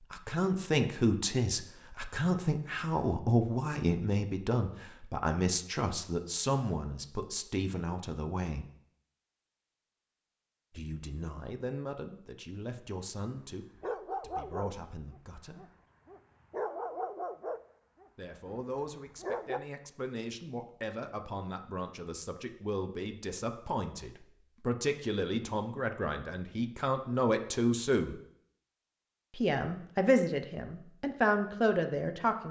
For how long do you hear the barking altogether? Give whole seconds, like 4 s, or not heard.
6 s.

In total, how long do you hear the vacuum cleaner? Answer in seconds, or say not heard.
not heard.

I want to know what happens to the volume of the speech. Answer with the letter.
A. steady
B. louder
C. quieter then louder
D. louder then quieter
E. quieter
C.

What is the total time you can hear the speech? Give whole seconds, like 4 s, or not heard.
27 s.